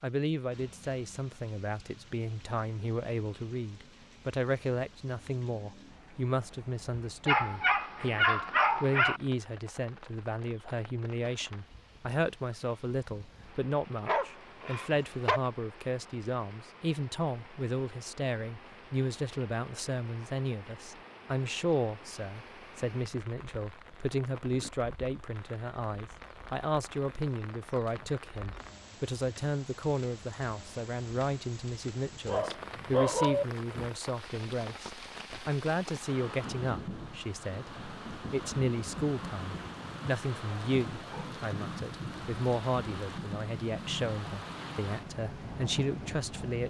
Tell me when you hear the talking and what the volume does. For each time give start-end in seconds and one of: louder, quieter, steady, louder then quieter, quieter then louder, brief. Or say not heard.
0.0-46.6 steady.